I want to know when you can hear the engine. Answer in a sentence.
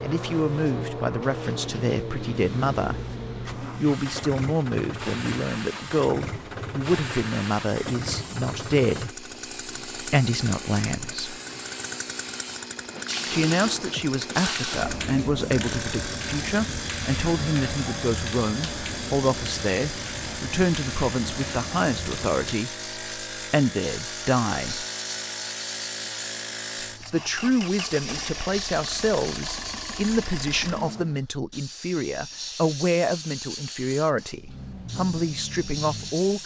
The engine can be heard from 0.0 to 31.1 s and from 34.4 to 36.4 s.